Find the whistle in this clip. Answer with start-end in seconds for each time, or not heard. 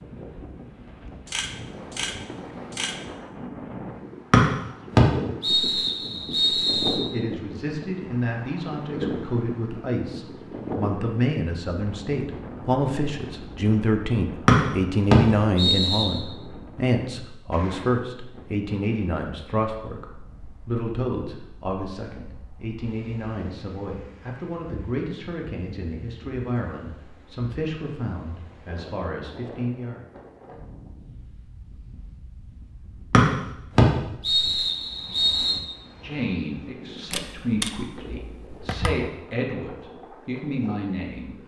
4.3-7.0, 14.4-16.1, 33.1-35.6.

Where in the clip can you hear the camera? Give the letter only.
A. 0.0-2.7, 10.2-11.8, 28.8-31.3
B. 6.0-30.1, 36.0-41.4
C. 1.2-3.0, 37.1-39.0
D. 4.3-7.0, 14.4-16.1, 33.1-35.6
C.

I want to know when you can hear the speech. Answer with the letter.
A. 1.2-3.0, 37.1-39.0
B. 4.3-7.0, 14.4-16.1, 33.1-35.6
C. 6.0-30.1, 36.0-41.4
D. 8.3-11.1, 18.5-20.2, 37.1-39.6
C.